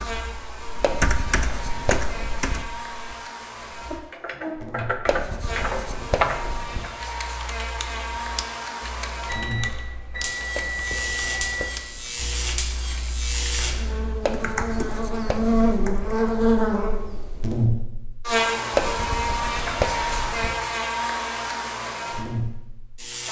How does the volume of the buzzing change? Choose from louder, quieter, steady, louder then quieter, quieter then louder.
louder.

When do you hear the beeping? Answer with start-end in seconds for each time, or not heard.
9.2-11.8.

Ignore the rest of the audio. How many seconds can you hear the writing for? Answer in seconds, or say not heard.
9 s.